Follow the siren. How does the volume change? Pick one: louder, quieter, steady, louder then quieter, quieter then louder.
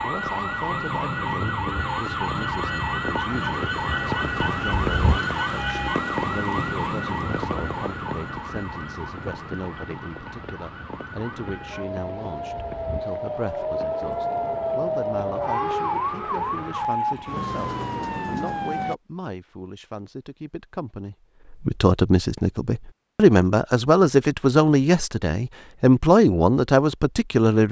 quieter then louder.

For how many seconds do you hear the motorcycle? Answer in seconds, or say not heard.
not heard.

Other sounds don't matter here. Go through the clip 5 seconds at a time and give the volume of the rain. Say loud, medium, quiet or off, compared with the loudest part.
loud, loud, medium, quiet, off, off.